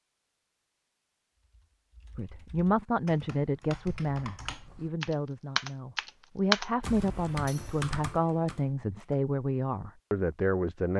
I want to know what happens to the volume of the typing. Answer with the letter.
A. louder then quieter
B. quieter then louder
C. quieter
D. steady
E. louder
A.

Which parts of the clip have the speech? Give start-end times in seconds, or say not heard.
2.1-10.9.